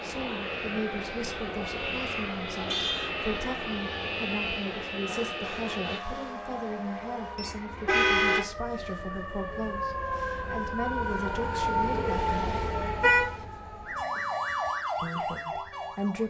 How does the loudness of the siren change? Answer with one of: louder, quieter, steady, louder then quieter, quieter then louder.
louder.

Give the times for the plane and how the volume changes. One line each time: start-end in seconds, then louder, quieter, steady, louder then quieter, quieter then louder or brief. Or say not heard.
0.0-6.0 steady.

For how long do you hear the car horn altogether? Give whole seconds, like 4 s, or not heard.
3 s.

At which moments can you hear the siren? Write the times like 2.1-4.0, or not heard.
0.0-16.2.